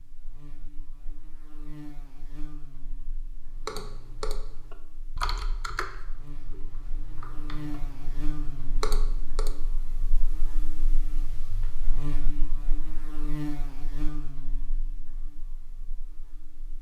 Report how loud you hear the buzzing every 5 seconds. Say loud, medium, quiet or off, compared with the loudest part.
medium, loud, loud, quiet.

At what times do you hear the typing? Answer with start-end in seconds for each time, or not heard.
3.3-9.8.